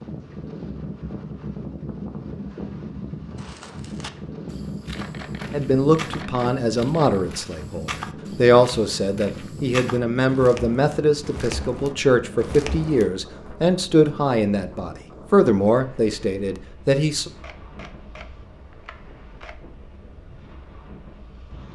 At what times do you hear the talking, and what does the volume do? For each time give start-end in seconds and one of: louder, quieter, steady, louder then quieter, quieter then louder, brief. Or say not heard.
5.5-17.3 steady.